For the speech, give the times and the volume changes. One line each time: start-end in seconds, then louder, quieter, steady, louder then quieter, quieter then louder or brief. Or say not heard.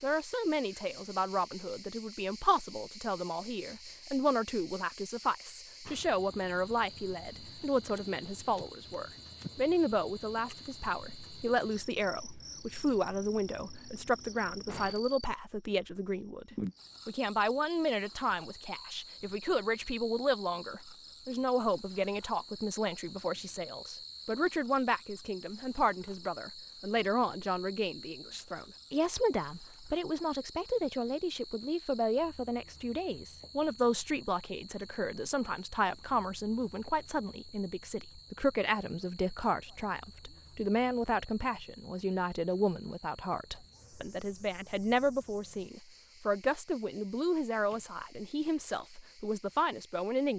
0.0-50.3 steady.